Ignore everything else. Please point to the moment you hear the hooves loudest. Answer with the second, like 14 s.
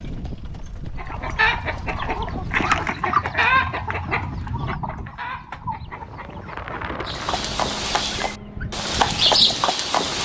9 s.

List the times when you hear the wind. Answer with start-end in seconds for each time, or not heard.
3.9-10.2.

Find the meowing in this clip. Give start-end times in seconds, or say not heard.
not heard.